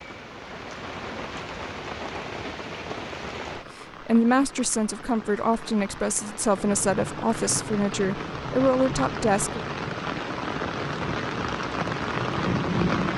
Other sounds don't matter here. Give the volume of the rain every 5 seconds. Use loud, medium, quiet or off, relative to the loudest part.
medium, medium, loud.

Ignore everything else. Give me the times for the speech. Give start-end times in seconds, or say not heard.
3.5-9.6.